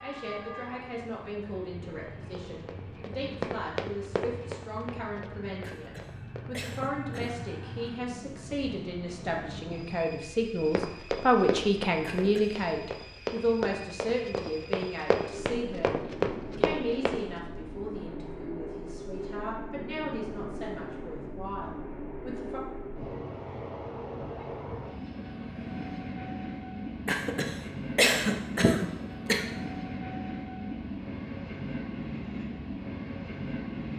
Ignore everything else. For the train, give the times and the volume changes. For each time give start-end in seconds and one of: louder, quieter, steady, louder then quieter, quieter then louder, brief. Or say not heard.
0.0-33.9 louder.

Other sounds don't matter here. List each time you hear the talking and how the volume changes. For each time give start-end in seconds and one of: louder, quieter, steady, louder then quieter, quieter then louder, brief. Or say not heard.
0.0-22.6 louder then quieter.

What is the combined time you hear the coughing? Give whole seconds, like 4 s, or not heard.
5 s.